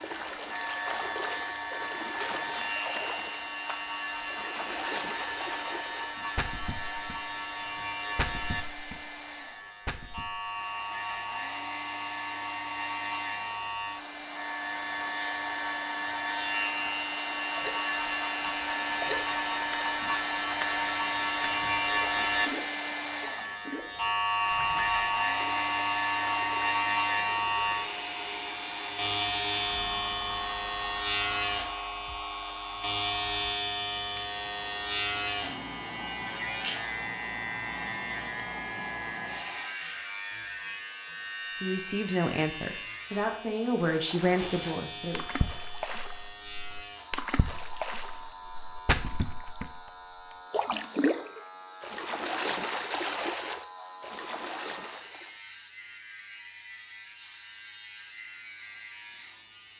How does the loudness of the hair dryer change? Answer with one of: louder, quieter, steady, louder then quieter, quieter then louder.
louder then quieter.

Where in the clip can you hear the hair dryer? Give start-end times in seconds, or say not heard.
0.0-39.8.